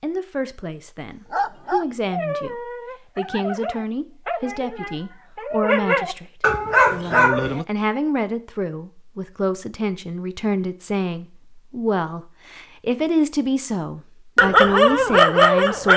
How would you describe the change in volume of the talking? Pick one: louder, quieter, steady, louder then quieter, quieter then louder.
louder.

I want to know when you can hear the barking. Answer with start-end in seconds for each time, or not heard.
1.3-7.7, 14.3-15.9.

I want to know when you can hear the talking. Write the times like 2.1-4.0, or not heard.
0.0-15.9.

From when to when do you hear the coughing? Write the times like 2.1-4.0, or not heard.
not heard.